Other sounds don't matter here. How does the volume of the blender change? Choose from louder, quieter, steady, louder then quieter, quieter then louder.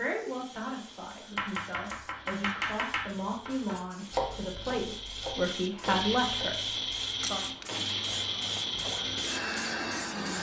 louder.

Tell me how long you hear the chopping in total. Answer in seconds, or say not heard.
5 s.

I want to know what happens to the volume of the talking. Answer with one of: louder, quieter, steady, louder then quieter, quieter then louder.
louder.